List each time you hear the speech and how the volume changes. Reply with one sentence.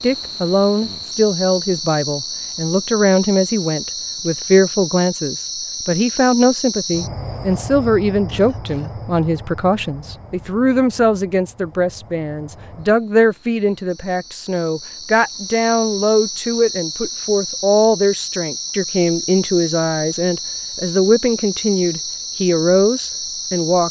You can hear the speech from 0.0 to 23.8 s, at a steady volume.